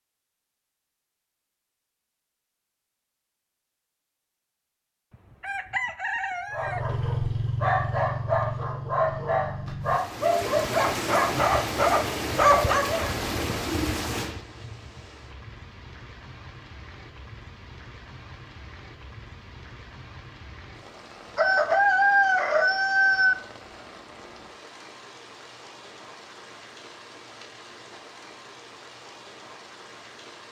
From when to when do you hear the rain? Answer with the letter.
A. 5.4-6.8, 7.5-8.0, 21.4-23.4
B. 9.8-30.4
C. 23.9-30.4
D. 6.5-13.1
B.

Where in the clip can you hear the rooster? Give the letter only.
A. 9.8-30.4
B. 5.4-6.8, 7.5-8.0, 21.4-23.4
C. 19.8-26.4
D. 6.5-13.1
B.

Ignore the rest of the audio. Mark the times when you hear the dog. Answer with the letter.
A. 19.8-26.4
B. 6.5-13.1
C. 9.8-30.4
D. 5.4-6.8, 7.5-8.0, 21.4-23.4
B.